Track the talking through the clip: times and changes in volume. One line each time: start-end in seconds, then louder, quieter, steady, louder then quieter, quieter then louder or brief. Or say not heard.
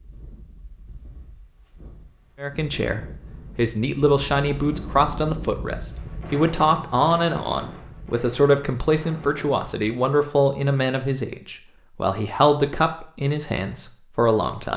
2.4-14.7 steady.